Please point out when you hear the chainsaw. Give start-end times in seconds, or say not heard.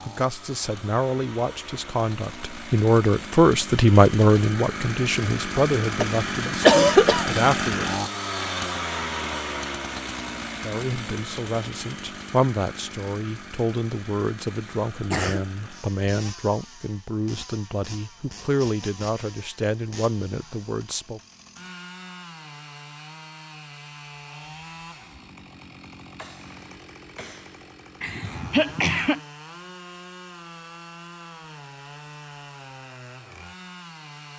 0.0-34.3.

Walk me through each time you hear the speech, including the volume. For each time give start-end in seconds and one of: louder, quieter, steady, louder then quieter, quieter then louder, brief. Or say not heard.
0.0-7.9 louder then quieter
10.6-21.2 steady.